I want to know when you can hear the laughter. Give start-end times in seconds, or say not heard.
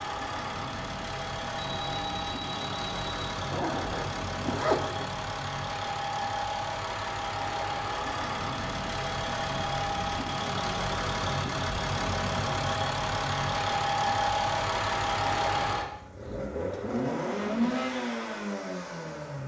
not heard.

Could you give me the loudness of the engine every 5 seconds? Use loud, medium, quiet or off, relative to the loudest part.
medium, loud, loud, loud.